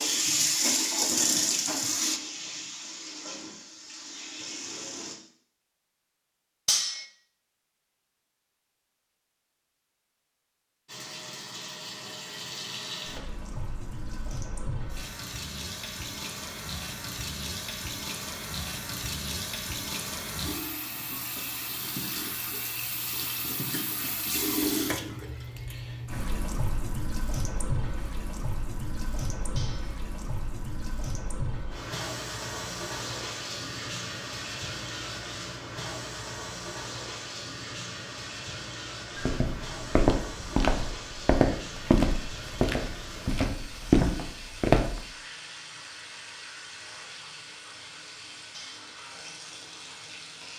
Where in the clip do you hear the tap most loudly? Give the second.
1 s.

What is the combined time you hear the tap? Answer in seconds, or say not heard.
45 s.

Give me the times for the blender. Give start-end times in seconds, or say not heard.
not heard.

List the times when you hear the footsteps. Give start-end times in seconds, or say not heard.
39.1-45.0.